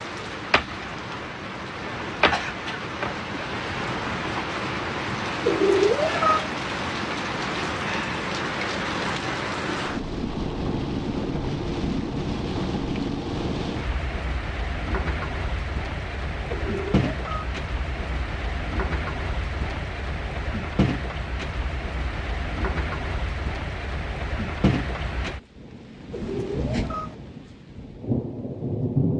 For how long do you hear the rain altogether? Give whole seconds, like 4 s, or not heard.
29 s.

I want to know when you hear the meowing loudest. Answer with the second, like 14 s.
6 s.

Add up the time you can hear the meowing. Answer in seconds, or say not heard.
3 s.